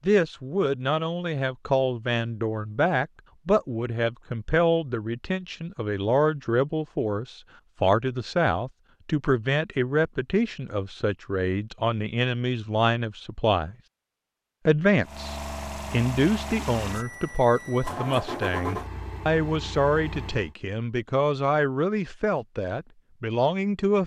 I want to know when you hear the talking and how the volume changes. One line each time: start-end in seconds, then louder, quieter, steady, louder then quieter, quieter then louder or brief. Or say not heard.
0.0-13.8 steady
14.7-24.0 steady.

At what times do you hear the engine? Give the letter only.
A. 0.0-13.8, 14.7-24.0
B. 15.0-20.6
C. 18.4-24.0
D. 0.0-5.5
B.